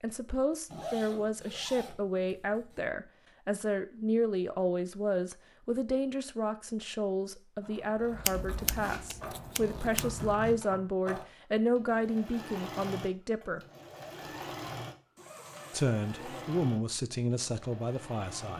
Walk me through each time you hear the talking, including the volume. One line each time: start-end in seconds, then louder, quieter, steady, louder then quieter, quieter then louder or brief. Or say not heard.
0.0-13.6 steady
15.7-18.5 brief.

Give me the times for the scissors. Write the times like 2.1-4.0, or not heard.
8.2-10.2.